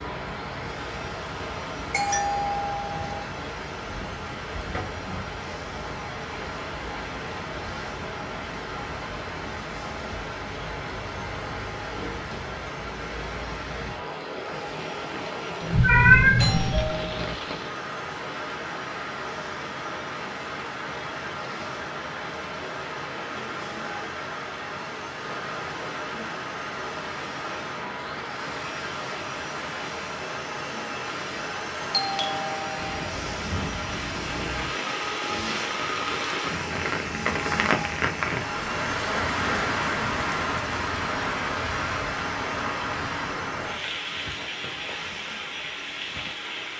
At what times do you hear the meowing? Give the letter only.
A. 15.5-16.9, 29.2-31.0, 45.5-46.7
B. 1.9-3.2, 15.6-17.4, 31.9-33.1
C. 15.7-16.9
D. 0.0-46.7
C.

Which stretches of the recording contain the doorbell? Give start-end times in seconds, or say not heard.
1.9-3.2, 15.6-17.4, 31.9-33.1.